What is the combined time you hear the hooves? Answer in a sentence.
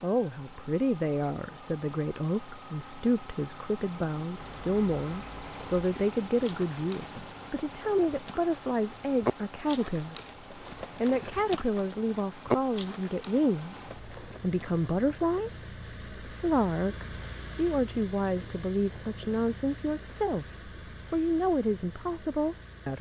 You can hear the hooves for 11 seconds altogether.